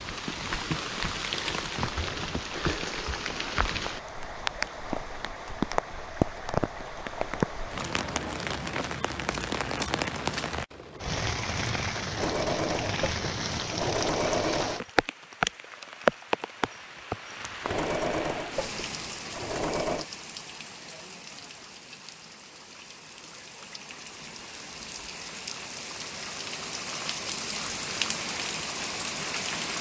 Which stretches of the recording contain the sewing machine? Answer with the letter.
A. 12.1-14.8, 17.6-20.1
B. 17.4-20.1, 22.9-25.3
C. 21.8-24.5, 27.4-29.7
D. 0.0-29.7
A.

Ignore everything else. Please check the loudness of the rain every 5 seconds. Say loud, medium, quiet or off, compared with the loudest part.
loud, loud, loud, loud, quiet, loud.